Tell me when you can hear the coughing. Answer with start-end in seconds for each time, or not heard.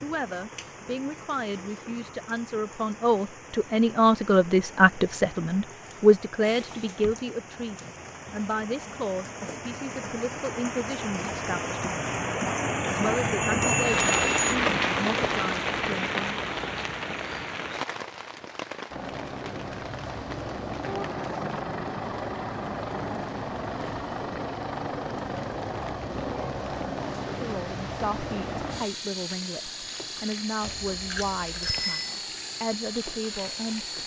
not heard.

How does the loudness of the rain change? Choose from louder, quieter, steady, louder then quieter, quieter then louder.
louder then quieter.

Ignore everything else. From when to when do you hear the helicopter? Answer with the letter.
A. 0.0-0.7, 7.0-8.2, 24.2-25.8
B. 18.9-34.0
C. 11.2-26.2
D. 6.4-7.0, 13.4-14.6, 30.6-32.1
B.